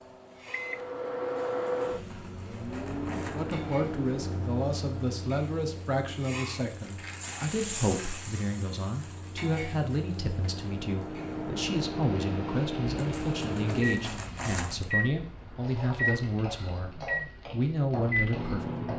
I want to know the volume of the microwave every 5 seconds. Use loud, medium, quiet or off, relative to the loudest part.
loud, quiet, loud, loud.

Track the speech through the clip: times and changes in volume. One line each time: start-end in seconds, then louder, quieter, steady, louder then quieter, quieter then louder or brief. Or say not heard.
3.3-18.9 steady.